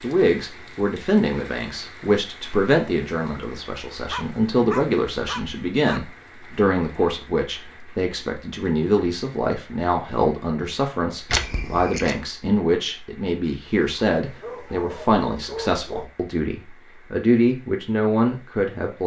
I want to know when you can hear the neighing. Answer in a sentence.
The neighing can be heard from 11.2 to 12.2 s.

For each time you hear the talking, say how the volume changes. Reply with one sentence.
The talking can be heard from 0.0 to 19.0 s, at a steady volume.